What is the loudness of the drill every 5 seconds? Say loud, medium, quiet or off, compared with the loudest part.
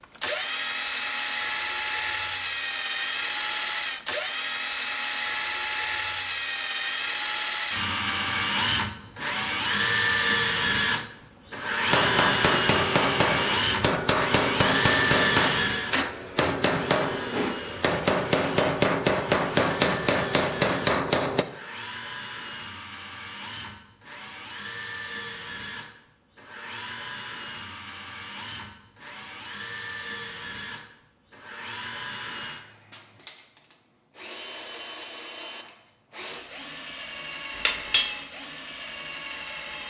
loud, loud, loud, medium, quiet, quiet, quiet, quiet.